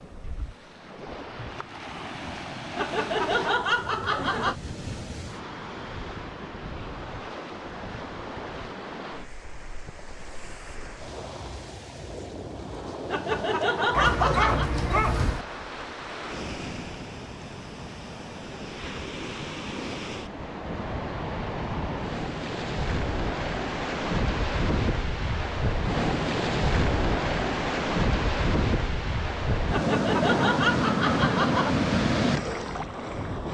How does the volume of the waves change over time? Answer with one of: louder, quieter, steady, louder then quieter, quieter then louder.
louder.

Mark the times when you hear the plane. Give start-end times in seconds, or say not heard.
not heard.